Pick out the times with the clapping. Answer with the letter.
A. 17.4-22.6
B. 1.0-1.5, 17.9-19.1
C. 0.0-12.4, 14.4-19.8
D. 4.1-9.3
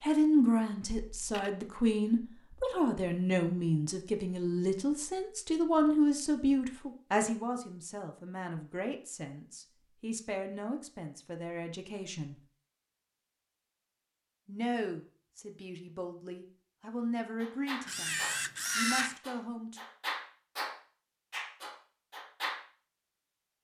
A.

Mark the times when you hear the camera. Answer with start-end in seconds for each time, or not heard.
1.0-1.5, 17.9-19.1.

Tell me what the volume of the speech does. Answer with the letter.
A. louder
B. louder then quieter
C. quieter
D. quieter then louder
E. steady
C.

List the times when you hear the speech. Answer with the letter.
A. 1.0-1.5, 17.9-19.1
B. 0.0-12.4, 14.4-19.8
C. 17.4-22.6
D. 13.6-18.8
B.